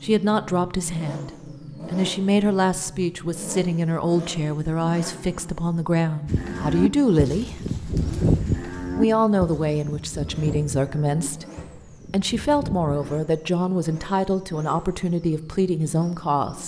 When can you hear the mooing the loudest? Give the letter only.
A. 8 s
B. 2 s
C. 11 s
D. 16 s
A.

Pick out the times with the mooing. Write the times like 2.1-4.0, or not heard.
6.2-13.2.